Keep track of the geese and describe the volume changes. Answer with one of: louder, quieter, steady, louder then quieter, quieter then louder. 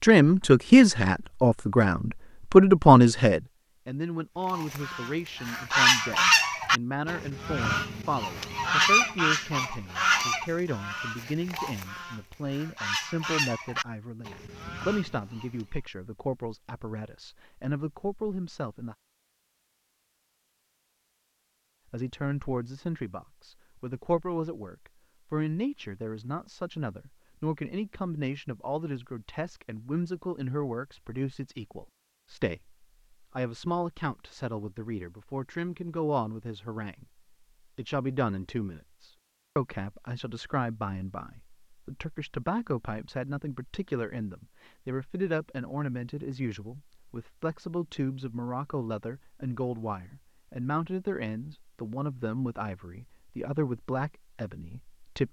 quieter.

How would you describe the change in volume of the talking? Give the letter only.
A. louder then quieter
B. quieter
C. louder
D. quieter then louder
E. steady
B.